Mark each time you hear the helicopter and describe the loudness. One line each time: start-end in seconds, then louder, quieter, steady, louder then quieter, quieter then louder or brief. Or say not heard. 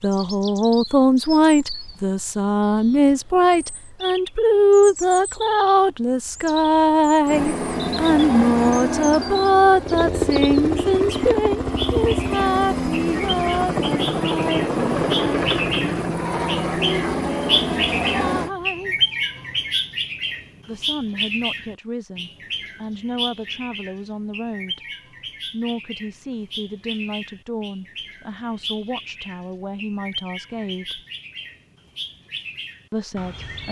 7.2-18.5 steady.